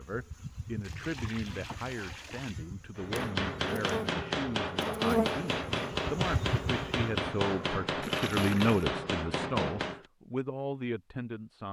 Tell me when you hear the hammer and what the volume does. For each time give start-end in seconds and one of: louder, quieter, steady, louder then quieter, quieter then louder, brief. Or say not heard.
3.0-10.1 steady.